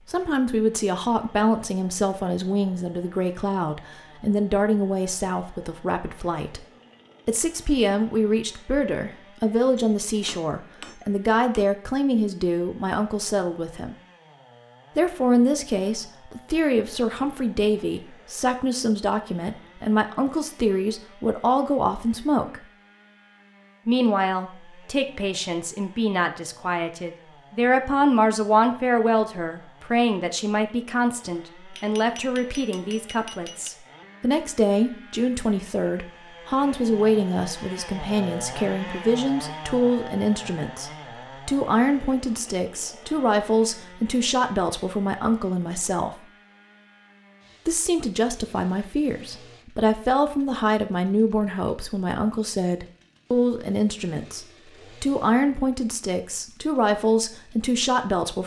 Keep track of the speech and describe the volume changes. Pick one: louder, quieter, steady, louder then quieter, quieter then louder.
steady.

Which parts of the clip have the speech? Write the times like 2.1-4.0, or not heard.
0.1-6.7, 7.2-13.9, 14.9-22.6, 23.9-46.2, 47.6-58.4.